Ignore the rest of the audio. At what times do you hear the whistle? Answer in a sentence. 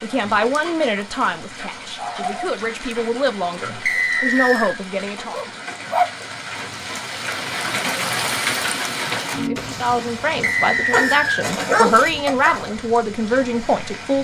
The whistle can be heard from 3.9 to 4.8 s and from 10.4 to 11.4 s.